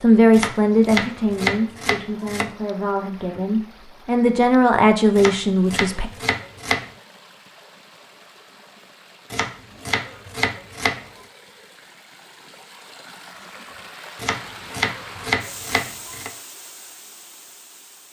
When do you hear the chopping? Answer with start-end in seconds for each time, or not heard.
0.3-2.5, 5.2-6.9, 9.3-11.1, 14.2-16.3.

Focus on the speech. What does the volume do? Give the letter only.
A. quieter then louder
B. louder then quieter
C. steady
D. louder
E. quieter
A.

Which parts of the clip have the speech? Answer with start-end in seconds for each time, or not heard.
0.0-6.1.